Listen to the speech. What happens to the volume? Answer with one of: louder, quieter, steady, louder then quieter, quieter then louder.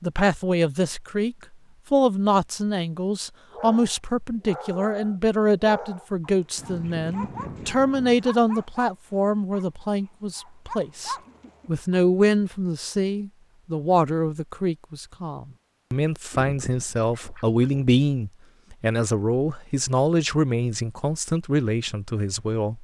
steady.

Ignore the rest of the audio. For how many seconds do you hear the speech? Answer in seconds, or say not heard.
23 s.